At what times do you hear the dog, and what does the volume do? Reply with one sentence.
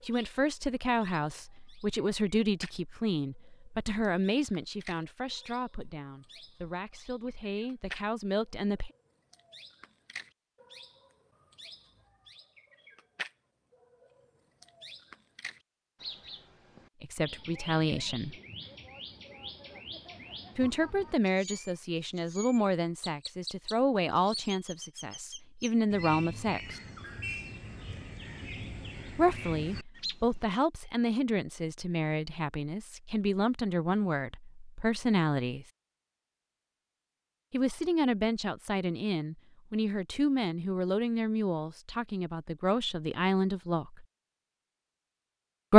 You can't hear the dog here.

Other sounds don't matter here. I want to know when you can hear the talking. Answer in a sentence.
The talking can be heard from 0.0 to 8.9 s, from 17.0 to 18.4 s, from 20.6 to 26.8 s, from 29.1 to 35.7 s and from 37.5 to 44.0 s.